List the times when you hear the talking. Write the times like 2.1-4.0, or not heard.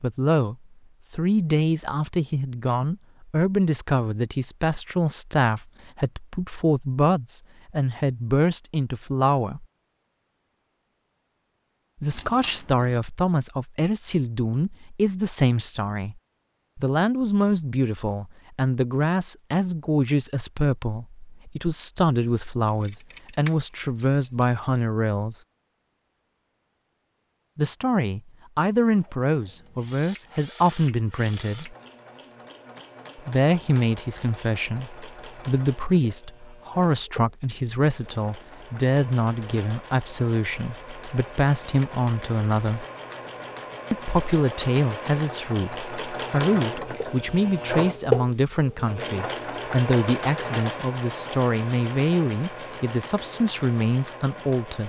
0.0-9.7, 12.0-25.4, 27.6-31.8, 33.1-42.9, 43.9-54.8.